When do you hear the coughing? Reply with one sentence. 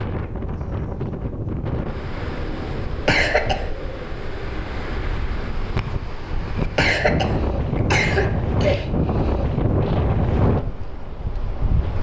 The coughing can be heard from 3.0 to 3.6 s and from 6.8 to 8.8 s.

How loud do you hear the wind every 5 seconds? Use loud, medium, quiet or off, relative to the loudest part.
medium, loud, loud.